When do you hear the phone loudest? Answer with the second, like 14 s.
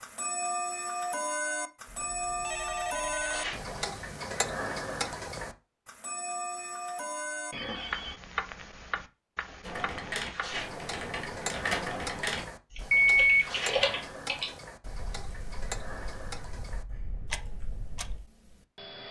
13 s.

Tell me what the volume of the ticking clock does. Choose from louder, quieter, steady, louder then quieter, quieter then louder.
quieter.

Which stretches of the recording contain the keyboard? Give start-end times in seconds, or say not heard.
9.6-18.2.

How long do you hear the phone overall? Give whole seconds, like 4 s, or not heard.
3 s.